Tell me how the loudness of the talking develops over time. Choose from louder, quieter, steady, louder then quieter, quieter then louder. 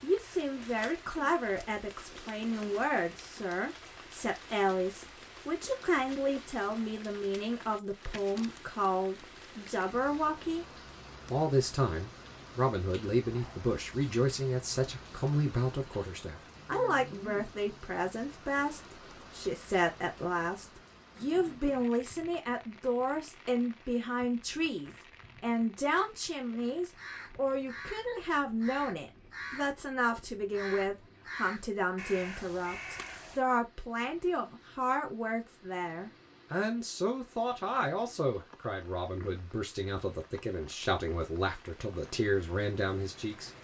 steady.